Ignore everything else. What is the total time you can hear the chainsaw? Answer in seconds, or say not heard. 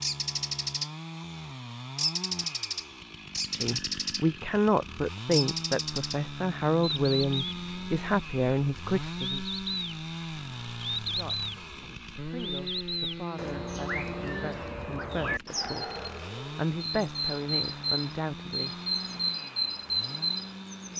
21 s.